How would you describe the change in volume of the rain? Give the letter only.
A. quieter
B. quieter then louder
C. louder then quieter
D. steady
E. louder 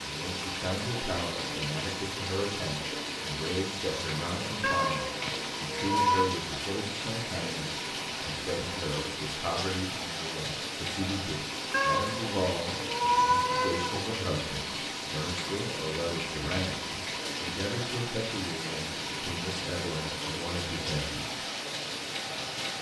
D.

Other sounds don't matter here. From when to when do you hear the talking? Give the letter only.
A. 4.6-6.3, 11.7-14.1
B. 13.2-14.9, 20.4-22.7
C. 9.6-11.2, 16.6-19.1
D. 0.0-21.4
D.